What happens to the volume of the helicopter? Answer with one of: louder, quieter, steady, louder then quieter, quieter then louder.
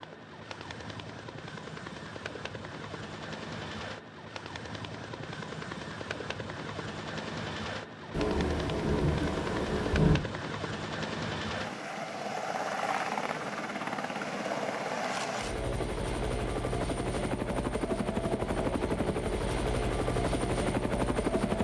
louder.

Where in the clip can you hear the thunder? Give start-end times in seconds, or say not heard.
8.1-10.2.